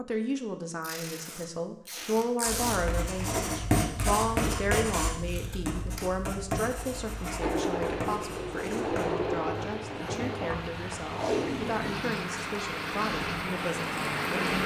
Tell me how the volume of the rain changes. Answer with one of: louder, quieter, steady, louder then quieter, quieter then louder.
louder.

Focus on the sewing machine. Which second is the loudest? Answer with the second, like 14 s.
9 s.